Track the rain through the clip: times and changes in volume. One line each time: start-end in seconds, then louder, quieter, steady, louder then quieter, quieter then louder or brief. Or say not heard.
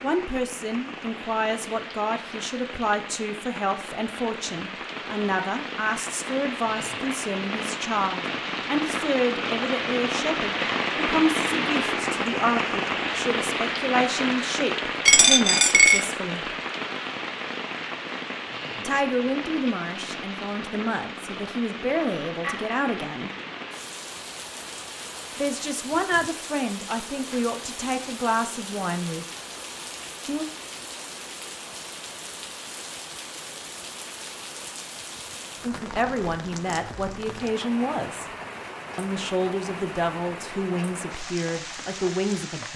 0.0-42.7 louder then quieter.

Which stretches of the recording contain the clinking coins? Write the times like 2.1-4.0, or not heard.
15.1-16.1, 21.9-22.8.